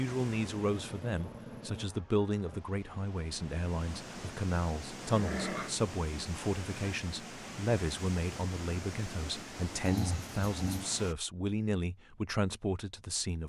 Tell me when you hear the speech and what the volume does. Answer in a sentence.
You can hear the speech from 0.0 to 13.4 s, at a steady volume.